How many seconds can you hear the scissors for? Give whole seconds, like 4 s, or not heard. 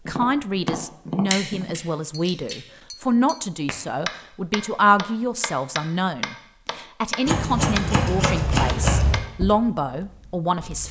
3 s.